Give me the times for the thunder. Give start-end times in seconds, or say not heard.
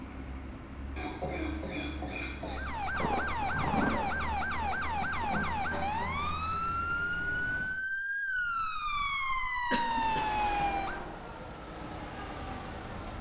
2.9-5.8.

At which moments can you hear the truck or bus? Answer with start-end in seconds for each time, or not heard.
0.0-7.8, 9.8-13.1.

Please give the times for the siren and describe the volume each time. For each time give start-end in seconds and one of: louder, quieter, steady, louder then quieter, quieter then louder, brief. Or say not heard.
2.4-11.1 steady.